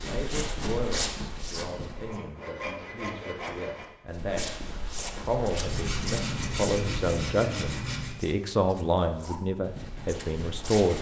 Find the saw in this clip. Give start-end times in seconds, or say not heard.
1.7-3.9, 5.6-8.2.